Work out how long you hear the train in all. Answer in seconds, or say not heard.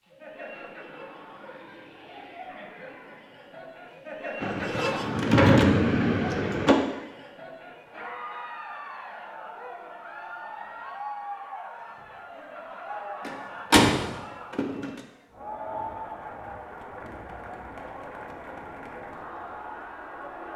2 s.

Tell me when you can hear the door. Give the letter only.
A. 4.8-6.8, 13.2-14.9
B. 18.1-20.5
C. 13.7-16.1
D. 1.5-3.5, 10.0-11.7
A.